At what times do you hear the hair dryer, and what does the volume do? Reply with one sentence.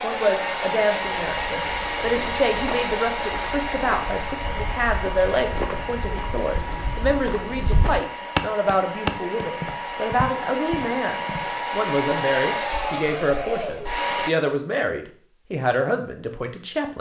You can hear the hair dryer from 0.0 to 14.3 s, getting quieter then louder.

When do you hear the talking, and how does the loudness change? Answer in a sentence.
The talking can be heard from 0.0 to 16.9 s, at a steady volume.